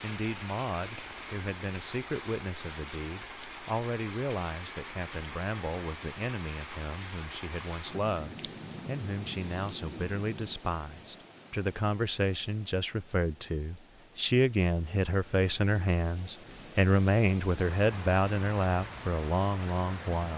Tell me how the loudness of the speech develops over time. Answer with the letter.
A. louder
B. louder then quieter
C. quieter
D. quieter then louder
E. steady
A.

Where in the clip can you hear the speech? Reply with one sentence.
The speech can be heard from 0.0 to 20.3 s.